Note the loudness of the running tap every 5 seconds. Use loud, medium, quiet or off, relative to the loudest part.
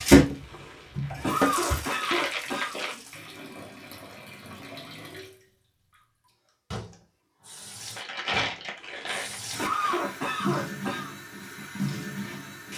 loud, quiet, medium.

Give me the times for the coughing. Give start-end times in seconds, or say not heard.
0.5-2.8, 8.8-11.2.